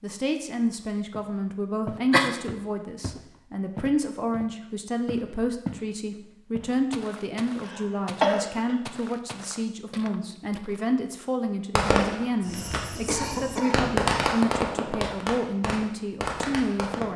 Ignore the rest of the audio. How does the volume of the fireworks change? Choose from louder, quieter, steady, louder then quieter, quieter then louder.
louder then quieter.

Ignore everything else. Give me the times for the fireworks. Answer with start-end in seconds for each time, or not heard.
11.8-17.1.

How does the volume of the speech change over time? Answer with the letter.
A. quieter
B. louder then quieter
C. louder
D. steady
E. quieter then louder
D.